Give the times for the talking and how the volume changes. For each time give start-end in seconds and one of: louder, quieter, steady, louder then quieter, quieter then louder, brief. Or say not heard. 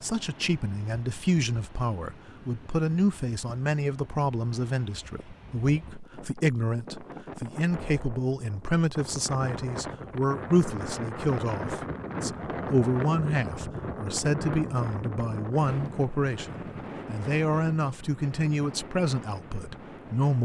0.0-20.4 steady.